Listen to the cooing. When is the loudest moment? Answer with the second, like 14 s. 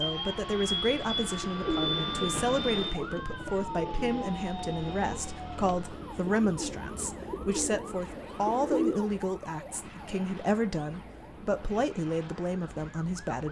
9 s.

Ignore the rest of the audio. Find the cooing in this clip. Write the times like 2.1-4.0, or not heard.
1.6-9.1.